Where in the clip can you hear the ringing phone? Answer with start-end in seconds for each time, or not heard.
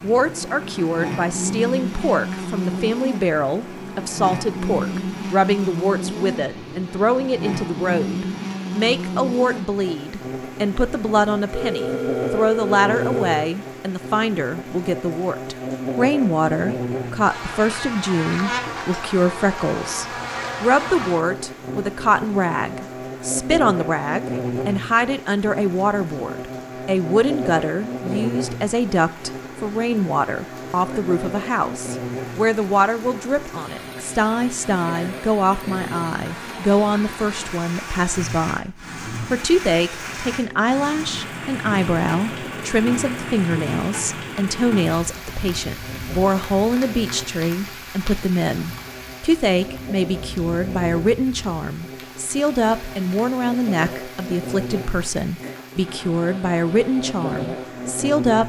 11.5-13.5.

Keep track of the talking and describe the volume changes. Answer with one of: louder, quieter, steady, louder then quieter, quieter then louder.
steady.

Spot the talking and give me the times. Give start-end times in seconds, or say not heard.
0.0-58.4.